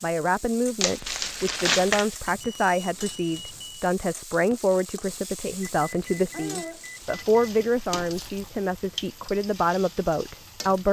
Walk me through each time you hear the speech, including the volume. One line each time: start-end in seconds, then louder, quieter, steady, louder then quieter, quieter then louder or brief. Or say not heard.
0.0-10.8 steady.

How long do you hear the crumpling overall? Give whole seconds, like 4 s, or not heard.
2 s.